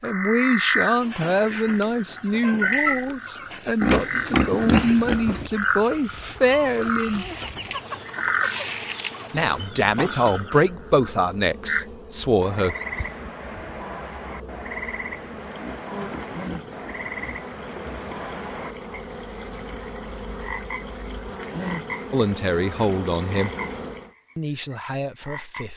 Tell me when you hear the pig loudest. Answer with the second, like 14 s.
5 s.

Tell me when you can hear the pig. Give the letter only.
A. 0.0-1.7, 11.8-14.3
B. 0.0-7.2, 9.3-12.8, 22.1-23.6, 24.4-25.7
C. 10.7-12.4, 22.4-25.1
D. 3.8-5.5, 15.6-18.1
D.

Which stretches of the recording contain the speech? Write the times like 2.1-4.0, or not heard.
0.0-7.2, 9.3-12.8, 22.1-23.6, 24.4-25.7.